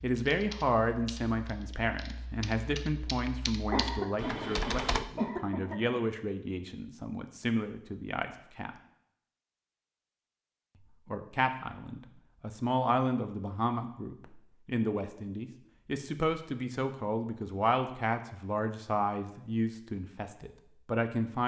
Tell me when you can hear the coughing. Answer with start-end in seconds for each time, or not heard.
3.7-6.0.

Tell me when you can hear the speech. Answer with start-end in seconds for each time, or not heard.
0.0-8.7, 11.1-21.4.